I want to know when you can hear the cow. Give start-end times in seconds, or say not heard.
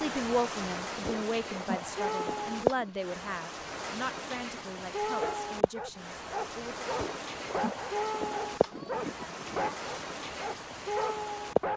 1.0-2.9, 7.0-9.8.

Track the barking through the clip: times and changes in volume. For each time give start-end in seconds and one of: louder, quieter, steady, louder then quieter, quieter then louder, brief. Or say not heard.
5.2-11.7 steady.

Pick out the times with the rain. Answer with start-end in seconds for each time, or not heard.
0.0-11.7.